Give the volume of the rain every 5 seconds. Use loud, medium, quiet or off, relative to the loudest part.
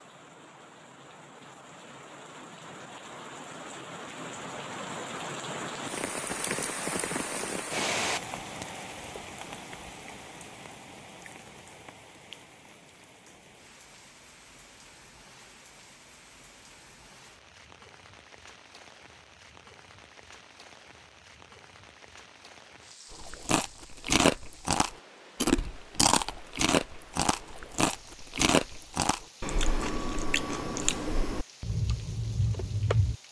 medium, loud, quiet, quiet, quiet, quiet, quiet.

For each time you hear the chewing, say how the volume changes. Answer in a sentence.
You can hear the chewing from 23.1 to 33.1 s, getting quieter.